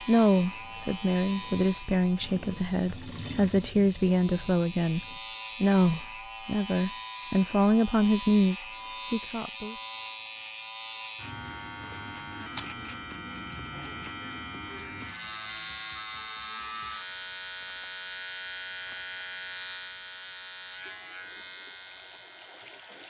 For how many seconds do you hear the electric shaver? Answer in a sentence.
You can hear the electric shaver for 23 seconds altogether.